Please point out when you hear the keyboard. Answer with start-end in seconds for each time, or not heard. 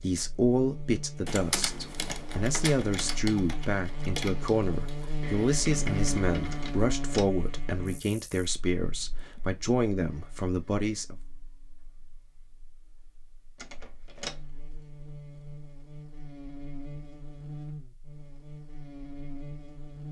1.2-6.8.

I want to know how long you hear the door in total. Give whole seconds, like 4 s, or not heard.
2 s.